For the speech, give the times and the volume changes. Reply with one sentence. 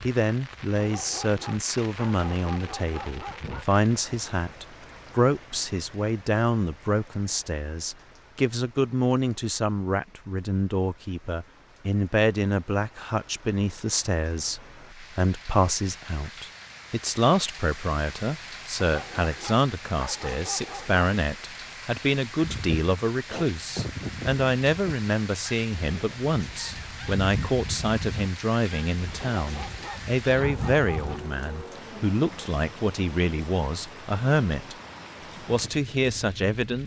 The speech can be heard from 0.0 to 34.8 s, at a steady volume; and briefly from 35.5 to 36.8 s.